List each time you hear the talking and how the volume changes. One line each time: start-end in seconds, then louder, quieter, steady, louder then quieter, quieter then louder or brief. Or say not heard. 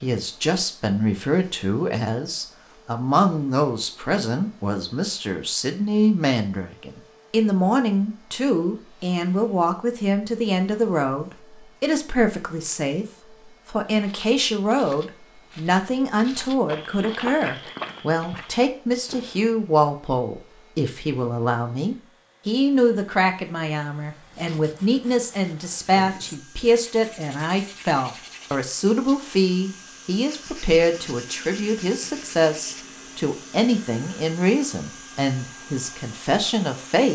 0.0-37.1 steady.